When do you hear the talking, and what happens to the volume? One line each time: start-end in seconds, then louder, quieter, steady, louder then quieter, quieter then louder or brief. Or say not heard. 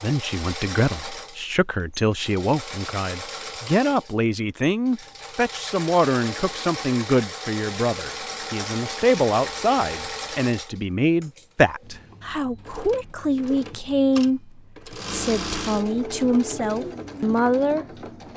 0.0-17.9 steady.